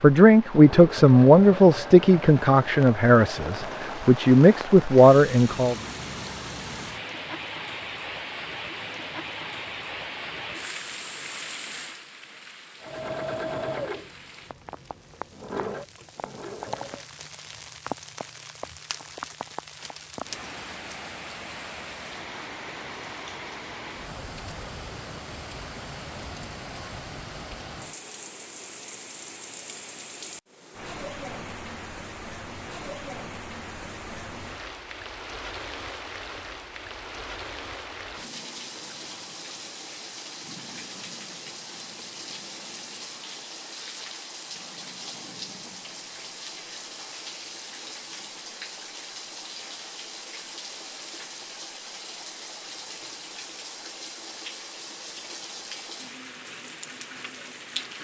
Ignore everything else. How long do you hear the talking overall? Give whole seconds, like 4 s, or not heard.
6 s.